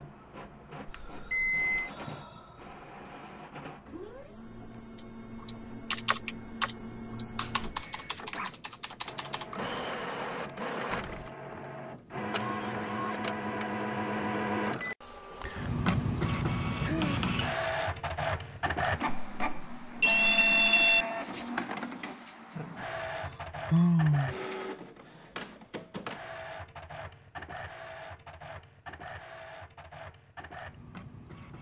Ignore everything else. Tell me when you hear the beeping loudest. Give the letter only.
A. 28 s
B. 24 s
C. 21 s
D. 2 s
C.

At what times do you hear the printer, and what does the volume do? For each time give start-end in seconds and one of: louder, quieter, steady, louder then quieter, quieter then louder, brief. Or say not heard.
0.0-31.5 louder then quieter.